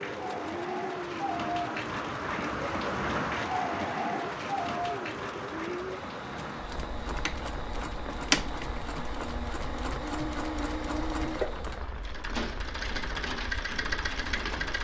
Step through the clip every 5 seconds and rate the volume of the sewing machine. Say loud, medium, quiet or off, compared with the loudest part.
medium, loud, loud.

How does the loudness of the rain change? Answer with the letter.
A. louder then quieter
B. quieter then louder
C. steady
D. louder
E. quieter
E.